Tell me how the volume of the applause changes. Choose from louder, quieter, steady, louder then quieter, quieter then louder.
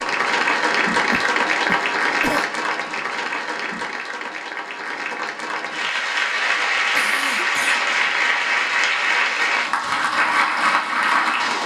quieter then louder.